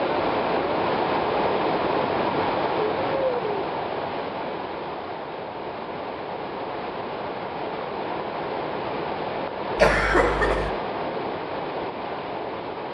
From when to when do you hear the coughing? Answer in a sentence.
The coughing can be heard from 9.8 to 10.7 s.